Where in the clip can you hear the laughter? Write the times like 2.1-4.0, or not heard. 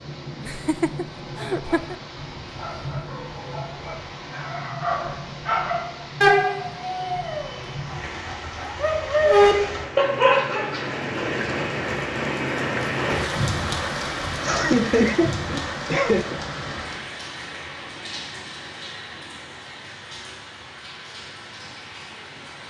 0.4-1.9, 14.4-16.4.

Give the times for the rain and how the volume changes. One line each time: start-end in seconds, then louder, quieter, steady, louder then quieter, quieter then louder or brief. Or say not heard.
0.0-22.6 louder then quieter.